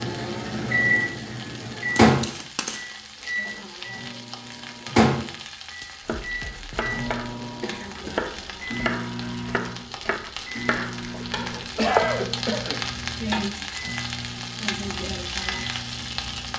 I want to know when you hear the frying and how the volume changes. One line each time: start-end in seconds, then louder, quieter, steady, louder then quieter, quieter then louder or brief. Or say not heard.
0.0-16.5 louder.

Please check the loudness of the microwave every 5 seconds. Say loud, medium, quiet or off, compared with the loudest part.
loud, medium, quiet, quiet.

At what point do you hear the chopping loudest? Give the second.
12 s.